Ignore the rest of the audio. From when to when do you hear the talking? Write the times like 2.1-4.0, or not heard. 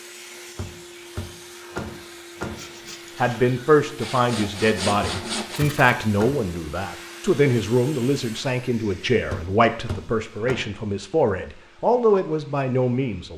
3.1-13.3.